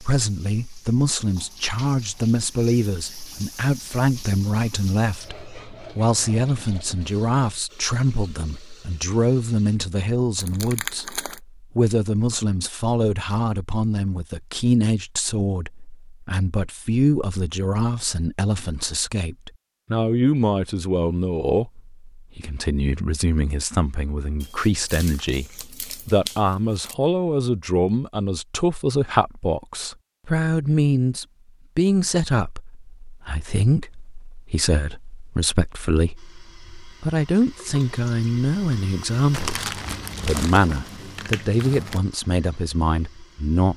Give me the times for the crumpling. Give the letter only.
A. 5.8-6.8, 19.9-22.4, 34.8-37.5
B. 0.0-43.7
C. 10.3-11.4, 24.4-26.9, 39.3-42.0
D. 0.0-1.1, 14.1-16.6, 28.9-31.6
C.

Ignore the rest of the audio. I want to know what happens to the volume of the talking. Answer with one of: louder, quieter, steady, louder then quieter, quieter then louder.
steady.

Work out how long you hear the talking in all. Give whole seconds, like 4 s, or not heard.
44 s.